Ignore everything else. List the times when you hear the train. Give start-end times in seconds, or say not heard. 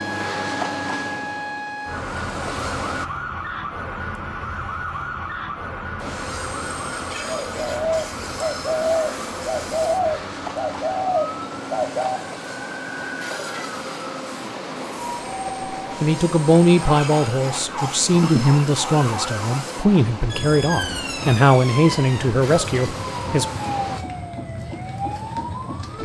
0.0-3.0, 6.0-24.0.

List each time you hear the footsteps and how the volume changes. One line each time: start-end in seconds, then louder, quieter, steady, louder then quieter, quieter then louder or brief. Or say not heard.
not heard.